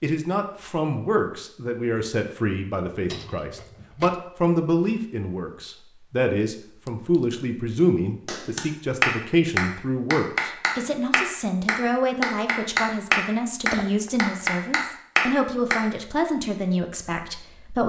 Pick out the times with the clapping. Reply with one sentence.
You can hear the clapping from 8.2 to 15.8 s.